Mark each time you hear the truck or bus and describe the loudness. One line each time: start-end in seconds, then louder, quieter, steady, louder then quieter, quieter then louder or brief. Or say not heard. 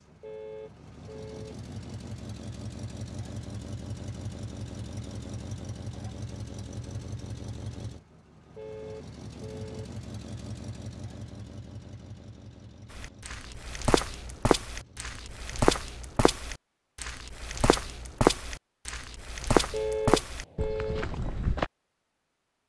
0.0-15.5 quieter.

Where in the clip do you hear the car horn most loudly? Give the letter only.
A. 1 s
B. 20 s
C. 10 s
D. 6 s
B.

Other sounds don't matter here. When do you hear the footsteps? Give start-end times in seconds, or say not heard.
12.9-21.7.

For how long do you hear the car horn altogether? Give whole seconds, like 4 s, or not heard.
4 s.